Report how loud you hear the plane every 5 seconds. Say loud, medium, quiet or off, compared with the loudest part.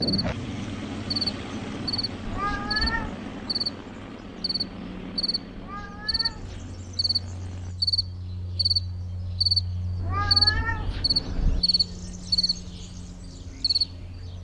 loud, medium, off.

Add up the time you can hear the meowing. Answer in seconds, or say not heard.
4 s.